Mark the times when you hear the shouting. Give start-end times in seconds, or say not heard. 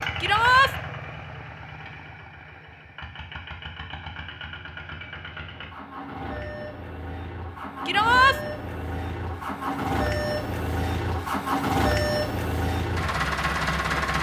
0.2-0.7, 7.8-8.3.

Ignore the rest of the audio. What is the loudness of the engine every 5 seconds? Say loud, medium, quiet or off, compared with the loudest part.
medium, medium, loud.